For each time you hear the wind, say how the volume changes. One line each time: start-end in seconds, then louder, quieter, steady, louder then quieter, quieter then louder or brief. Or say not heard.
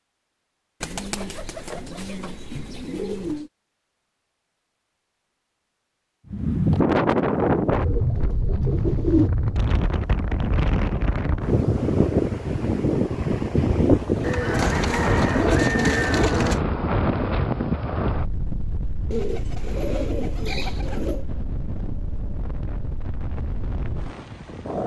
6.3-24.8 quieter.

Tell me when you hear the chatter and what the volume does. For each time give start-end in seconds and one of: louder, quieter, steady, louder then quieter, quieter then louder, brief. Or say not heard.
not heard.